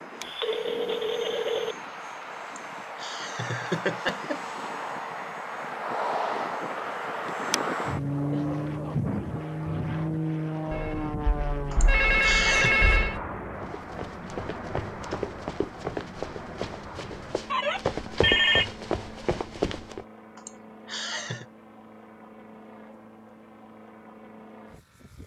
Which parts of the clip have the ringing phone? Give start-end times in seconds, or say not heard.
0.2-1.8, 10.7-13.2, 16.9-18.7.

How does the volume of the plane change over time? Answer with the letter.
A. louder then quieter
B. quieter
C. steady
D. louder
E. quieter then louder
A.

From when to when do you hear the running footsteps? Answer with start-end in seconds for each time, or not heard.
13.6-20.1.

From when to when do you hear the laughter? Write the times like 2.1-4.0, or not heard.
2.5-4.4, 11.7-12.8, 20.4-21.4.